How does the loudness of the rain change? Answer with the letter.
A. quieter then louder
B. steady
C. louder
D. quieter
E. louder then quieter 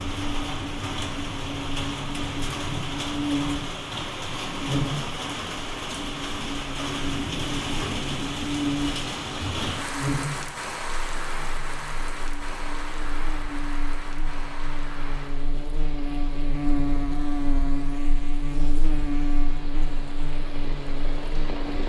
D.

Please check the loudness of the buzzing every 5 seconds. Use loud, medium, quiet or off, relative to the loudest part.
loud, loud, medium, loud, medium.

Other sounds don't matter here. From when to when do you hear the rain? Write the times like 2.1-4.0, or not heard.
0.0-21.8.